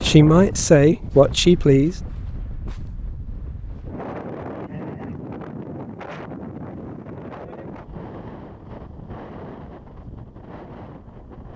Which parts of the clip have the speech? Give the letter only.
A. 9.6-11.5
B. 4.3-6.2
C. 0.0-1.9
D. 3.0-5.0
C.